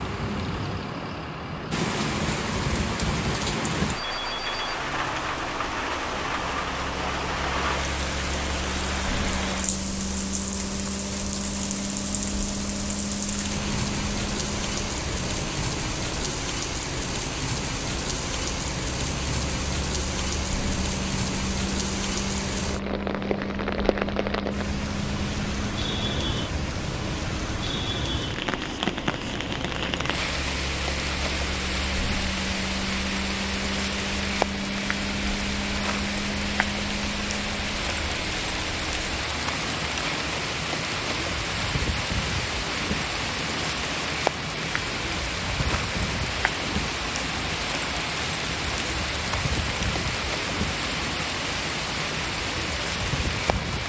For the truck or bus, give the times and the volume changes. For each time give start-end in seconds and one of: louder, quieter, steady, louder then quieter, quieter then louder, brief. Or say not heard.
0.0-53.8 steady.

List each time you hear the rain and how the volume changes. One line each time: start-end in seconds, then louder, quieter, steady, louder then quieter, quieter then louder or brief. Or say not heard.
0.0-53.8 steady.